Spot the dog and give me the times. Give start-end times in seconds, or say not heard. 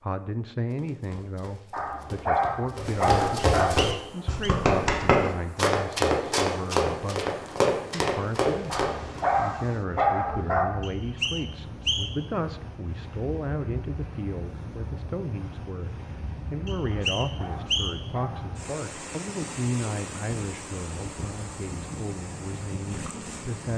1.7-3.7, 8.7-10.7, 16.9-18.6.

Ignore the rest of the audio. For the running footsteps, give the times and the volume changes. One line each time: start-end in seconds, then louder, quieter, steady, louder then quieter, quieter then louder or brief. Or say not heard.
0.7-9.2 louder.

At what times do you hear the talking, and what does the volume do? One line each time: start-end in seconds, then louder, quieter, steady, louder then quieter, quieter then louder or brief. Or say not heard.
0.0-23.7 steady.